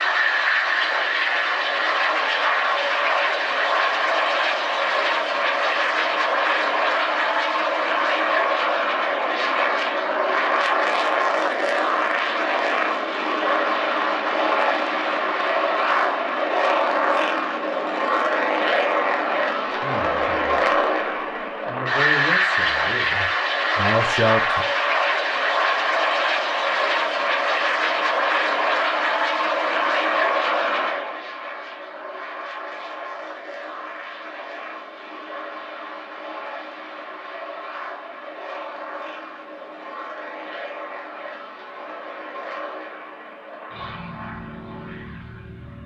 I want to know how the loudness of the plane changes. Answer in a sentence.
The volume of the plane goes down.